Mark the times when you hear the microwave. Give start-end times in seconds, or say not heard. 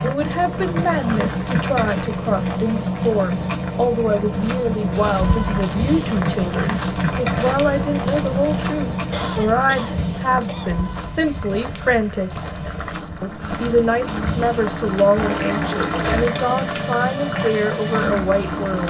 not heard.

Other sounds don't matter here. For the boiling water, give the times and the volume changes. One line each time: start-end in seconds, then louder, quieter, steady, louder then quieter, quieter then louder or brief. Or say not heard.
0.0-18.8 quieter then louder.